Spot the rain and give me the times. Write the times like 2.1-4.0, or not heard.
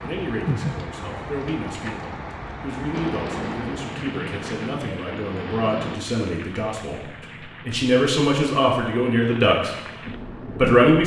0.0-10.8.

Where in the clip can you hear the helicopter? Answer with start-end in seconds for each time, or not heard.
2.9-6.0.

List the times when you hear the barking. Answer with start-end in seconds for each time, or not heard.
not heard.